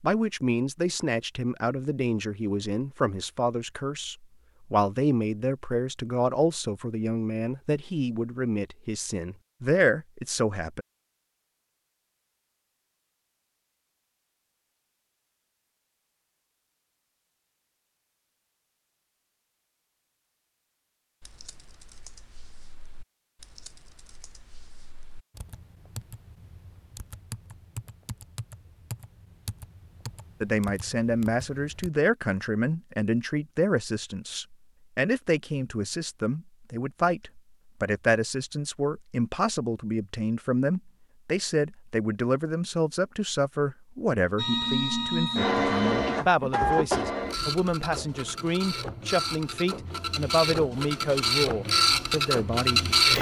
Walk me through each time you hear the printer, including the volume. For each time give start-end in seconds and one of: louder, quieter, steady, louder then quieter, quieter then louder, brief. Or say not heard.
44.4-53.1 quieter then louder.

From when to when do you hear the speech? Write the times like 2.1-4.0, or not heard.
0.0-10.8, 30.4-52.9.